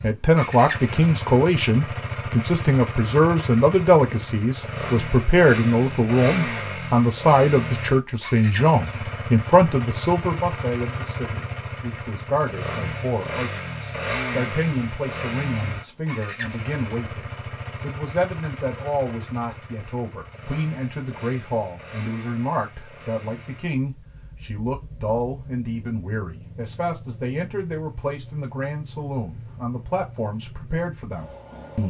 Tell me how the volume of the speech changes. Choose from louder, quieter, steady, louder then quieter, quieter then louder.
quieter.